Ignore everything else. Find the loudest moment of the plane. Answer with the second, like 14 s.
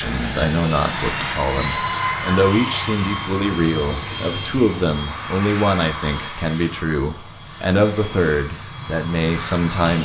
2 s.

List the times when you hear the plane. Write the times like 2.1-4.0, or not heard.
0.0-9.9.